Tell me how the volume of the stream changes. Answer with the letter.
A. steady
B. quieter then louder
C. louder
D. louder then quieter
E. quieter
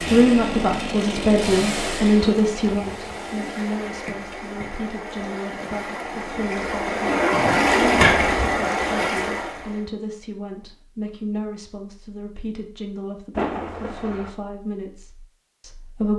C.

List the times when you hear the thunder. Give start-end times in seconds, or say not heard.
13.3-14.3.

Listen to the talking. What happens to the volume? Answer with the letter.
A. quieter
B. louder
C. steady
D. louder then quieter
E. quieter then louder
A.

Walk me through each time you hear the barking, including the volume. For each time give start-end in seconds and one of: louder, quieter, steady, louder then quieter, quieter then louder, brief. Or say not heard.
not heard.